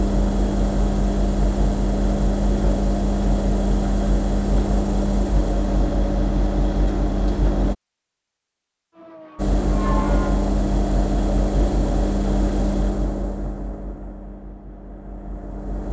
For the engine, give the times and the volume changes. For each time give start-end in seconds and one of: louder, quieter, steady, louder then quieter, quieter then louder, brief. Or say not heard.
0.0-7.8 steady
9.3-15.8 quieter.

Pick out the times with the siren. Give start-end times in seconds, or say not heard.
8.9-10.6.